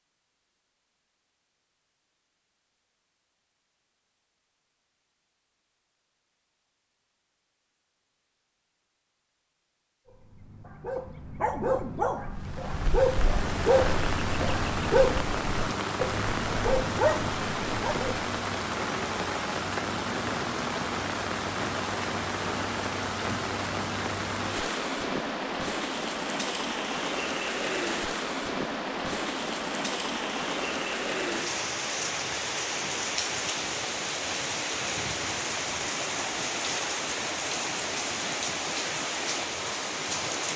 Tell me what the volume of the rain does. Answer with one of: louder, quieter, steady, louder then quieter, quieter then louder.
steady.